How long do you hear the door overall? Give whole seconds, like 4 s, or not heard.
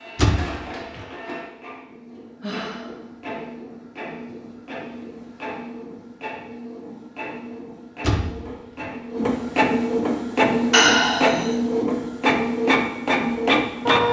2 s.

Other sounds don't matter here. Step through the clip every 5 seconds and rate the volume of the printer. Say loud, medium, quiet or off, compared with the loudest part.
quiet, medium, loud.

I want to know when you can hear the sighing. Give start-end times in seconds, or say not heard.
2.4-3.0, 10.7-11.5.